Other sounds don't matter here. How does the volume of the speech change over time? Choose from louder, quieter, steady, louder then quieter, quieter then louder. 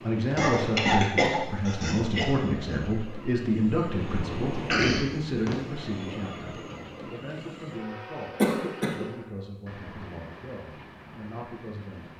quieter.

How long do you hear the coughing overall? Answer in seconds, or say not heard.
4 s.